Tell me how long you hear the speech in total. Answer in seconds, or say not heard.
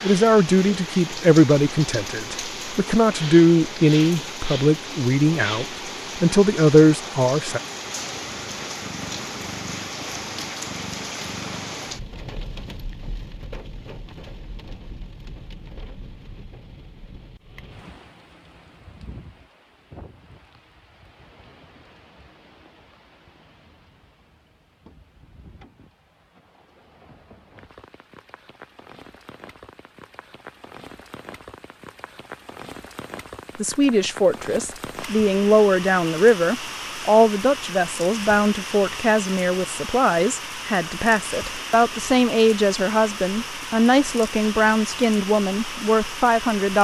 21 s.